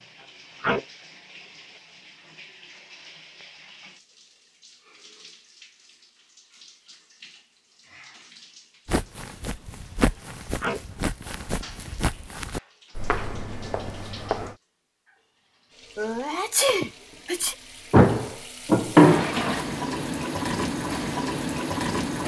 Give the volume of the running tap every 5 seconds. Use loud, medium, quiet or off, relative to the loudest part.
quiet, quiet, quiet, medium, loud.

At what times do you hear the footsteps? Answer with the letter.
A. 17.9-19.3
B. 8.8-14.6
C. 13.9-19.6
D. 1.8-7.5
B.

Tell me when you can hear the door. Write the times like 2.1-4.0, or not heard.
17.9-19.3.